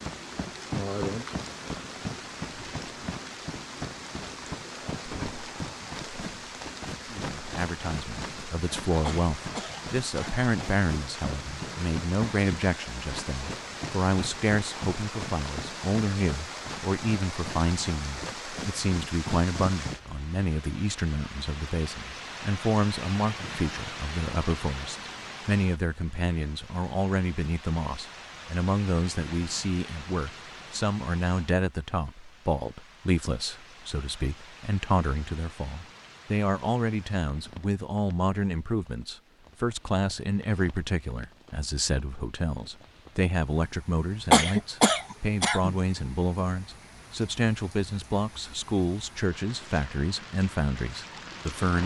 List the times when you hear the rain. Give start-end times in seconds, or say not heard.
0.0-51.8.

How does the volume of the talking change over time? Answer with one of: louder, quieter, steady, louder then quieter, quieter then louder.
steady.